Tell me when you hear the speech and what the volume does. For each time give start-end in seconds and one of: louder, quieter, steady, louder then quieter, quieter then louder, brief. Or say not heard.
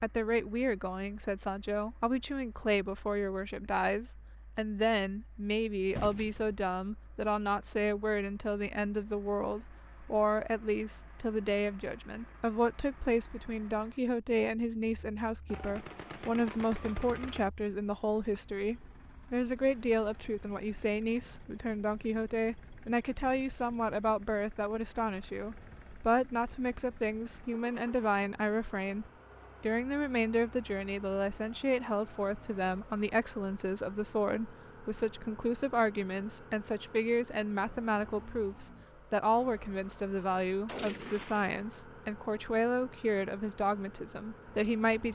0.0-45.0 steady.